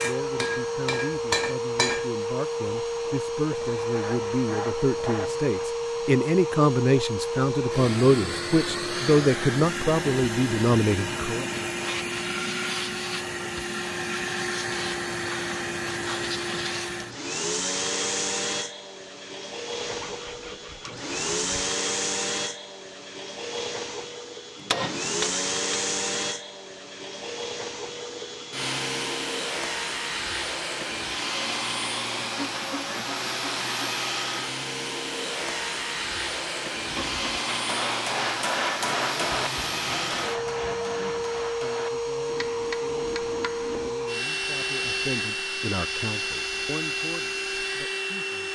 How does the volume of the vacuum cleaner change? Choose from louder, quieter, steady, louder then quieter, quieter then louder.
steady.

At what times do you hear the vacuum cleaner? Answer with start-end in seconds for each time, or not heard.
0.0-48.5.